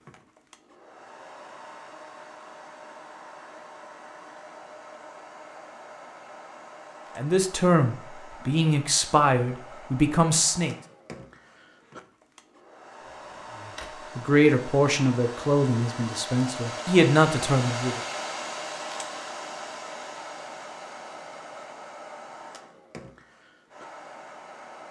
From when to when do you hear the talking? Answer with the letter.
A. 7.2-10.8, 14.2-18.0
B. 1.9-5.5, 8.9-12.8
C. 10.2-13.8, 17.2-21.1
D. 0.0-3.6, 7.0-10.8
A.